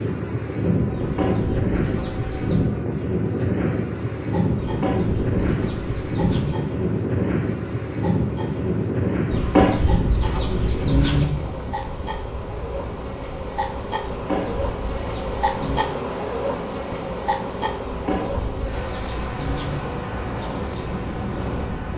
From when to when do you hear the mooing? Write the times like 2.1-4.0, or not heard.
not heard.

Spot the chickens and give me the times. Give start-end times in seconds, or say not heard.
0.9-2.7, 4.6-6.5, 9.3-11.2, 14.1-15.9, 17.8-19.8.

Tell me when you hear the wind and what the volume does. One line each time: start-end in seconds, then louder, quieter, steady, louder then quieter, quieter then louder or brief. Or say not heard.
0.0-21.9 quieter then louder.